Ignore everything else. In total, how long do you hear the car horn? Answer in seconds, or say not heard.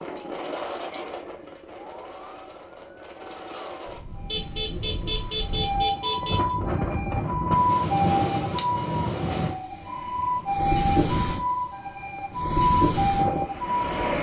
2 s.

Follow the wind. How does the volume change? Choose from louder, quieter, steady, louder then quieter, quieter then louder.
louder.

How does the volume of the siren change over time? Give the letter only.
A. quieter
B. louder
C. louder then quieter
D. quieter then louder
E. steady
B.